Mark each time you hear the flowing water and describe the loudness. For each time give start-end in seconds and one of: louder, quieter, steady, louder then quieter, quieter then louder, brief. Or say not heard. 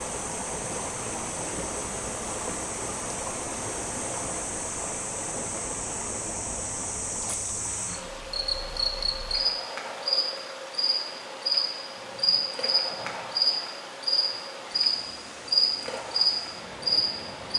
0.0-17.5 quieter.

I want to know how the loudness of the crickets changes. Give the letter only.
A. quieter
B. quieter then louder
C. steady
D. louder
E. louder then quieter
D.